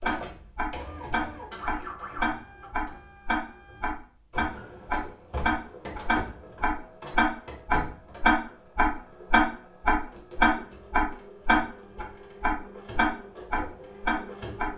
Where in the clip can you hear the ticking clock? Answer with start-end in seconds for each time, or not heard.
0.0-14.7.